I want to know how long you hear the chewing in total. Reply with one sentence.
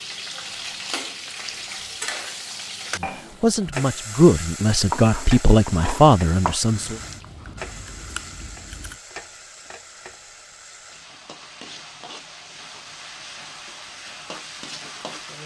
You can hear the chewing for 2 seconds altogether.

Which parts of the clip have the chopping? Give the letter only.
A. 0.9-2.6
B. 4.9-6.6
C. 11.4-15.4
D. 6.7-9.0
B.